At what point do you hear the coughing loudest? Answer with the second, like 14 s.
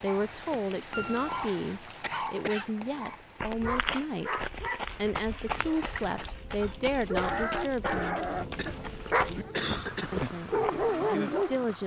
10 s.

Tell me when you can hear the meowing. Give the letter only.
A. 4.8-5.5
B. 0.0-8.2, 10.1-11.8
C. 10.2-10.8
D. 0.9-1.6
D.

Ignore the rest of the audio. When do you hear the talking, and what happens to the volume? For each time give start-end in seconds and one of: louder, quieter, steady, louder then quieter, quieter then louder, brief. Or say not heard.
0.0-8.2 steady
10.1-11.8 brief.